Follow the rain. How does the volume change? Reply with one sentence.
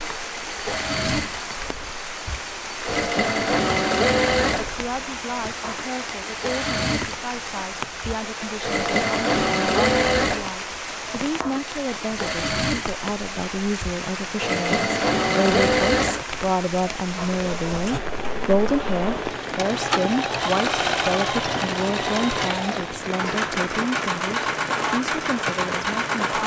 The loudness of the rain stays about the same.